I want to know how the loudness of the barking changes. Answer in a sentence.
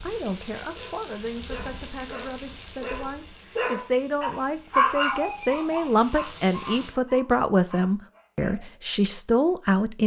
The loudness of the barking goes up, then down.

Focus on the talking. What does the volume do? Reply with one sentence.
The loudness of the talking goes up.